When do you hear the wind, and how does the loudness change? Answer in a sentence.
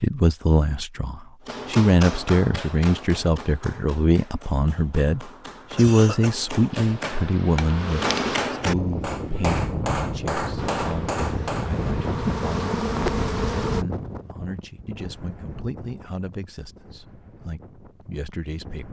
The wind can be heard from 8.6 to 18.8 s, getting quieter.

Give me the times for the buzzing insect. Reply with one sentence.
You can hear the buzzing insect from 6.7 to 8.4 s and from 10.6 to 13.8 s.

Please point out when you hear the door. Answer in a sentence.
The door can't be heard in this clip.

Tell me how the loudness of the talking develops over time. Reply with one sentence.
The loudness of the talking goes down.